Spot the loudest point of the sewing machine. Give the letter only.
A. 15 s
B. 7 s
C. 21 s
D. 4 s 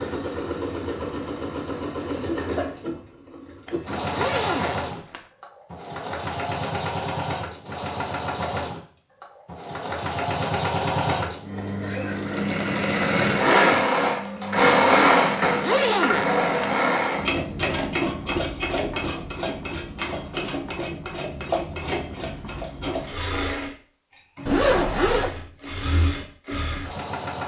A.